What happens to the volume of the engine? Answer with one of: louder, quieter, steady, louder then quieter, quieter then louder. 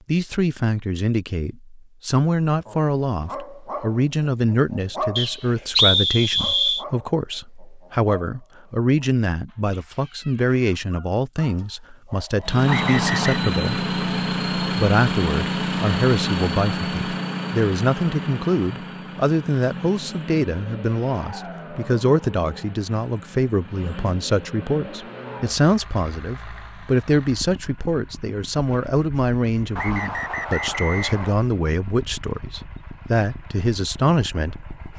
quieter.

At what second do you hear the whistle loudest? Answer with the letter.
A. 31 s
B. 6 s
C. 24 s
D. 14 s
B.